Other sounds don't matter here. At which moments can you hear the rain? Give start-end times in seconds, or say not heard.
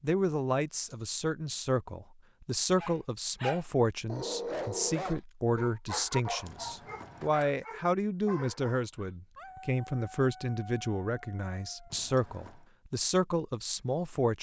not heard.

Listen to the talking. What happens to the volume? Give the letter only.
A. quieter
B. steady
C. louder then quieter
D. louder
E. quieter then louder
B.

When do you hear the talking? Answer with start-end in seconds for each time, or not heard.
0.0-14.3.